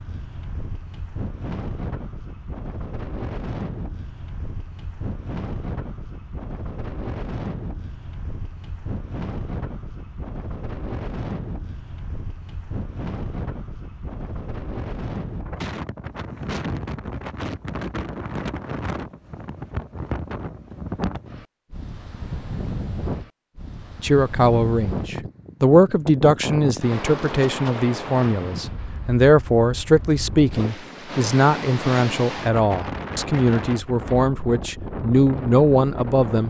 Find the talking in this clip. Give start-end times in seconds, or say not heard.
24.0-36.4.